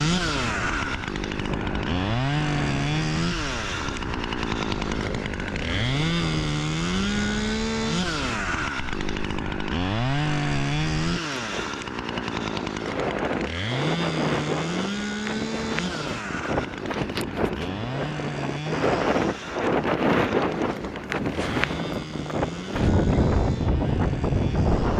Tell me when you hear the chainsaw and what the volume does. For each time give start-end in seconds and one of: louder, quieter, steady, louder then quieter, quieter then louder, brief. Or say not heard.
0.0-24.9 quieter.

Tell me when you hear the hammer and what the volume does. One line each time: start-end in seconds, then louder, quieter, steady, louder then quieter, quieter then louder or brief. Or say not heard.
not heard.